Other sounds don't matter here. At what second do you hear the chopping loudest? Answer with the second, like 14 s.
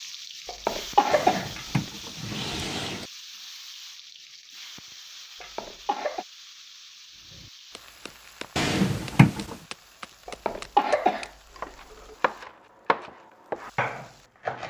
14 s.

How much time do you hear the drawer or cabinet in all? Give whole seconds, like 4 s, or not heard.
3 s.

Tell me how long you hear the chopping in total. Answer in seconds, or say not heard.
7 s.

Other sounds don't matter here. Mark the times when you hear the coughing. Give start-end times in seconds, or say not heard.
0.5-1.5, 5.4-6.2, 10.2-12.2.